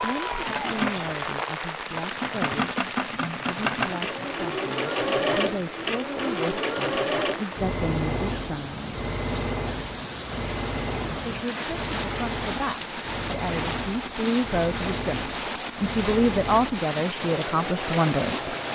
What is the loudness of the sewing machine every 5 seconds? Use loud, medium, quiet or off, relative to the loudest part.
loud, loud, medium, medium.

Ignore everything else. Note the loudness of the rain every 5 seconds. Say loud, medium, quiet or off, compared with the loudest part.
loud, medium, loud, loud.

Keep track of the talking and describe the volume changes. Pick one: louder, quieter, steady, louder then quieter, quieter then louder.
louder.